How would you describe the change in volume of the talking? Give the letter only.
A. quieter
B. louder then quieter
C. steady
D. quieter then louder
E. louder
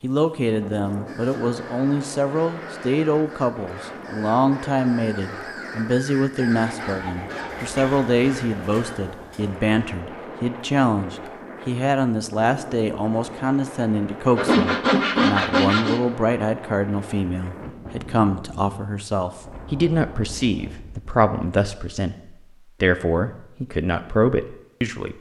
C.